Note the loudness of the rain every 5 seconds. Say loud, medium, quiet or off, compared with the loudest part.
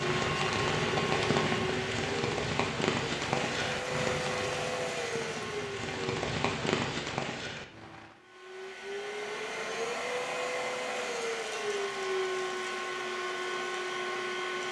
loud, loud, off.